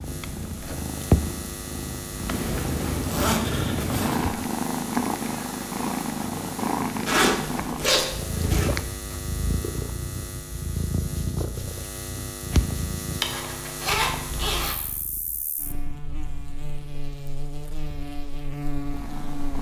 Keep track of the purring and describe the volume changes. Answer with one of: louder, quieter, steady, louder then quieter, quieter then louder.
quieter.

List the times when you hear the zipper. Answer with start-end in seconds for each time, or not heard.
2.2-4.3, 7.0-8.7, 13.2-14.8.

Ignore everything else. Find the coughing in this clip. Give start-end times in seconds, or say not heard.
not heard.